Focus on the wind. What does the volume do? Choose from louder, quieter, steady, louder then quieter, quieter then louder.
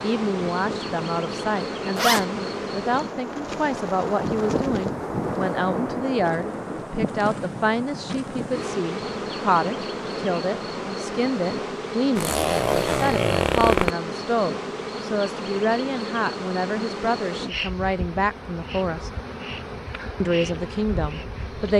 louder then quieter.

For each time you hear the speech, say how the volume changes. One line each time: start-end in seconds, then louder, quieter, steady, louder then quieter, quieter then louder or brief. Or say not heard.
0.0-19.1 steady
20.2-21.7 brief.